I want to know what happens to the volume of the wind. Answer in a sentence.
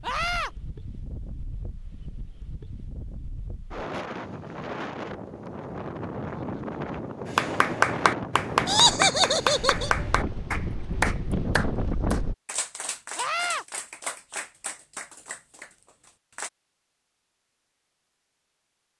The loudness of the wind goes up.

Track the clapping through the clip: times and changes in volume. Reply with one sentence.
You can hear the clapping from 7.2 to 16.5 s, getting quieter.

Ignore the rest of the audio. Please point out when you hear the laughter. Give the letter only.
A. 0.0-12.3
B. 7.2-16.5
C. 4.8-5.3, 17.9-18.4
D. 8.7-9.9
D.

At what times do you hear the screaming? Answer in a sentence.
The screaming can be heard from 0.0 to 0.5 s and from 13.2 to 13.7 s.